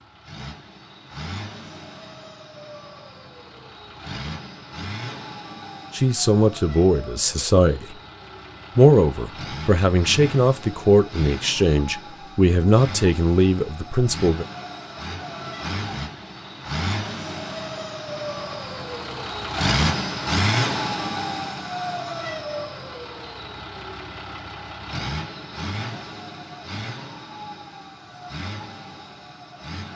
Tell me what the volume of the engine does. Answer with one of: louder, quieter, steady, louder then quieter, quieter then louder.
louder then quieter.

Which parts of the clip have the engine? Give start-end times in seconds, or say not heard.
0.0-29.9.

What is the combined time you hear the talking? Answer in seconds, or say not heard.
8 s.